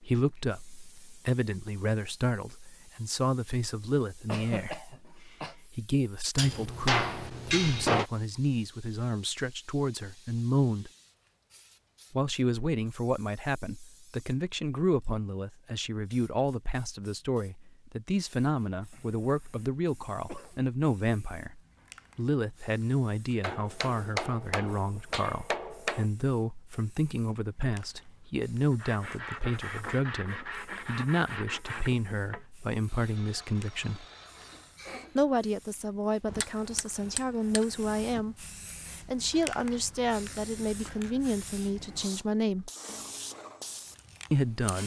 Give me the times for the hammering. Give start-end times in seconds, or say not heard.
6.3-8.1, 23.4-26.1, 36.2-38.2.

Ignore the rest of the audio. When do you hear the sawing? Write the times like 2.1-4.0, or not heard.
28.7-34.8.